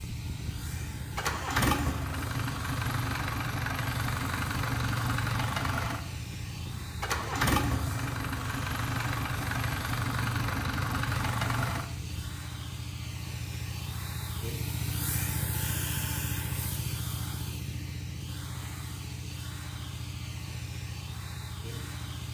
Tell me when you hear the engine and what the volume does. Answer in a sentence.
You can hear the engine from 0.0 to 12.2 s, at a steady volume.